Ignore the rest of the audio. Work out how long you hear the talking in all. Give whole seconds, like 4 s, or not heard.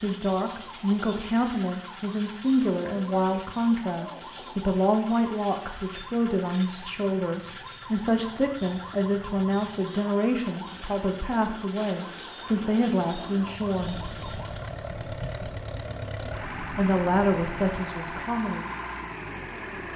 16 s.